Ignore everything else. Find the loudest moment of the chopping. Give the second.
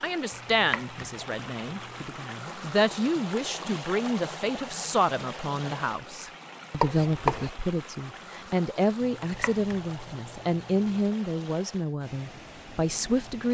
7 s.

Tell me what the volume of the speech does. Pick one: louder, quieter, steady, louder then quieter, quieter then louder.
steady.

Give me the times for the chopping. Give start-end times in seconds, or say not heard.
0.3-2.1, 6.8-7.5, 9.1-11.0.